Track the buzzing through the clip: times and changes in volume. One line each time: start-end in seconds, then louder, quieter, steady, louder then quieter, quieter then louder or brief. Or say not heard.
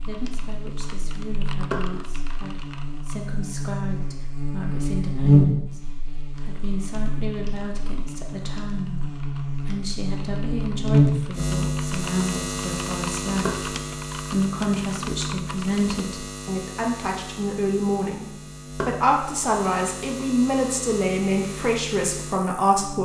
0.0-23.0 louder then quieter.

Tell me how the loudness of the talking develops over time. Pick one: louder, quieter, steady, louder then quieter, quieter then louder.
louder.